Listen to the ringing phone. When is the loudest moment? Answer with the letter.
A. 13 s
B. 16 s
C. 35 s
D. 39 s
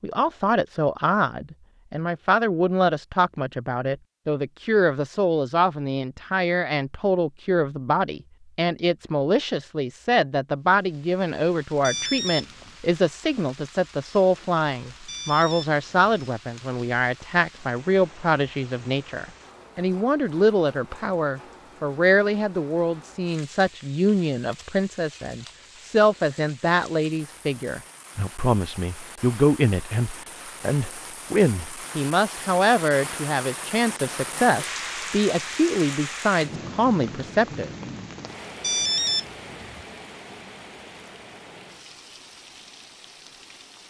D.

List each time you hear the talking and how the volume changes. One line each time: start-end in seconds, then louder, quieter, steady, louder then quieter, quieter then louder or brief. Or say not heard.
0.0-37.7 steady.